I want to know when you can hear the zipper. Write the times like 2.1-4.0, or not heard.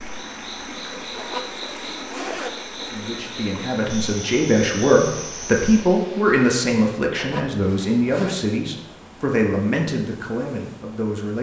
1.1-2.5, 7.2-8.4.